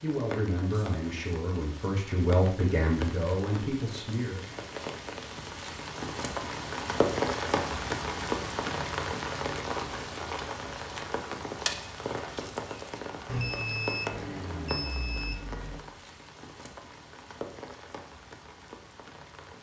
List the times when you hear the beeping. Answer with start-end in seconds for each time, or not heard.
13.2-15.9.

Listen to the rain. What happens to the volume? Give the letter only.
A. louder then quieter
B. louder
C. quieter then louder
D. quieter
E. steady
A.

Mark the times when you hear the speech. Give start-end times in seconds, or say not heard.
0.0-4.5.